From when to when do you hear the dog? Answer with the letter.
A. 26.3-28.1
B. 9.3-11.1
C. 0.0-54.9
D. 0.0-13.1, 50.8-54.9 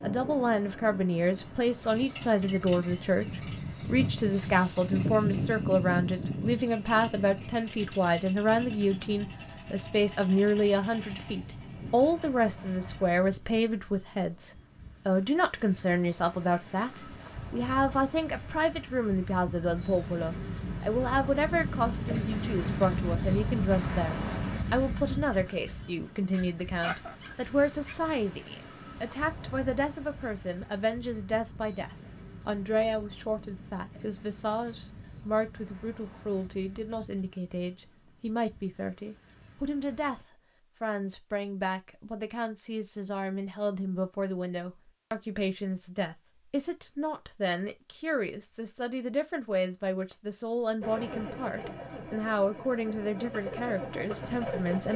A.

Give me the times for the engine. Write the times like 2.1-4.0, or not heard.
0.0-13.1, 50.8-54.9.